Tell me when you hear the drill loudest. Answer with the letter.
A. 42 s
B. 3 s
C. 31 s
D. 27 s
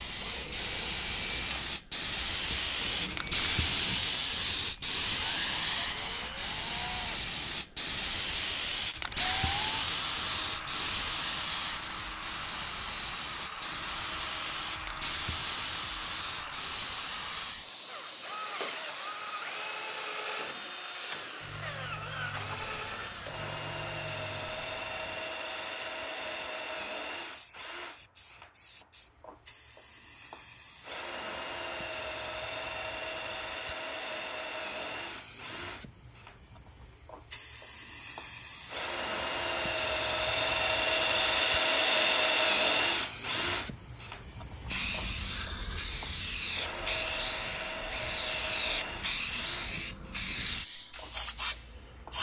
A.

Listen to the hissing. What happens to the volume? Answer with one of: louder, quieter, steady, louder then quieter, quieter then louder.
quieter then louder.